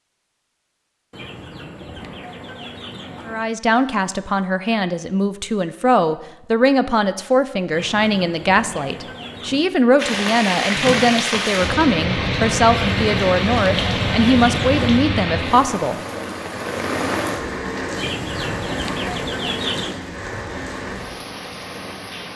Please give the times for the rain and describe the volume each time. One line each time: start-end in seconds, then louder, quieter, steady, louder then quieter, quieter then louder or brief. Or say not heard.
9.9-22.3 quieter.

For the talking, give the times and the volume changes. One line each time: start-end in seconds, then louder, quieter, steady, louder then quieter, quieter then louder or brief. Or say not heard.
3.2-16.0 steady.